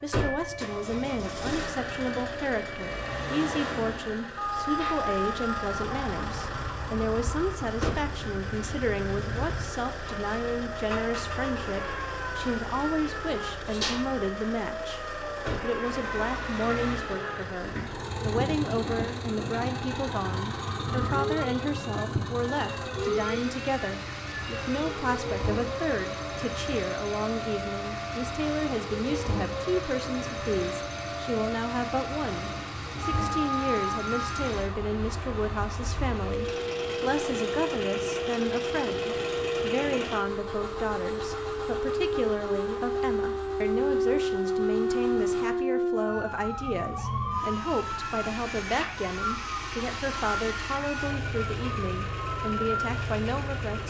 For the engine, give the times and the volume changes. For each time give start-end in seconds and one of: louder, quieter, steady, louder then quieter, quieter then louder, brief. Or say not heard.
0.0-53.8 steady.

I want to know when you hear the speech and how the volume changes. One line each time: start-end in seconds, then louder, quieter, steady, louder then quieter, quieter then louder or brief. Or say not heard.
0.0-53.8 steady.